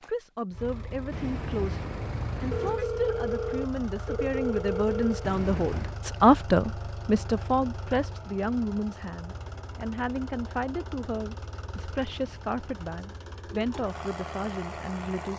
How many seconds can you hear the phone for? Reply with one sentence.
The phone can be heard for 3 seconds in total.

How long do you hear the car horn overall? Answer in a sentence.
You can hear the car horn for 3 seconds altogether.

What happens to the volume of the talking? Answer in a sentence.
The volume of the talking goes up, then down.